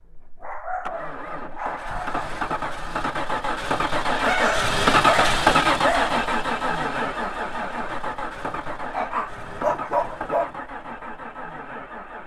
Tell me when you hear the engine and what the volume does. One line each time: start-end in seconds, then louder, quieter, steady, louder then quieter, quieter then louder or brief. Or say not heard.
0.0-12.2 louder then quieter.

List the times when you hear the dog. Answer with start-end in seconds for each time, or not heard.
0.4-2.4, 4.2-6.2, 8.9-10.5.